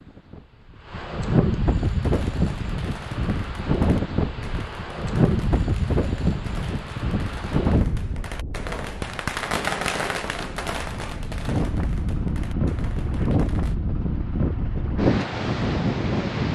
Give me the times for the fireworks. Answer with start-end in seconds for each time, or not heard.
1.9-13.8.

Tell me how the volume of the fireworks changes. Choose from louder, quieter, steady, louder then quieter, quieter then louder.
louder then quieter.